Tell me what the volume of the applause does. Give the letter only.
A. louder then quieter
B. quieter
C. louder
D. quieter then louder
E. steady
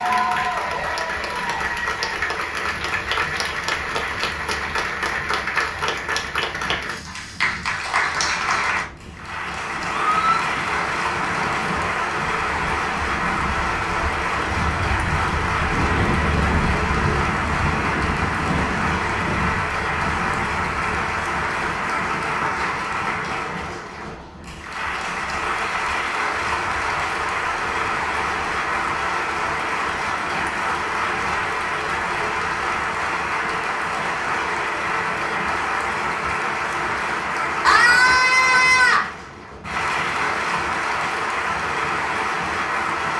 E.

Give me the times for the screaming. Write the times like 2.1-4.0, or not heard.
10.1-10.5, 37.6-39.1.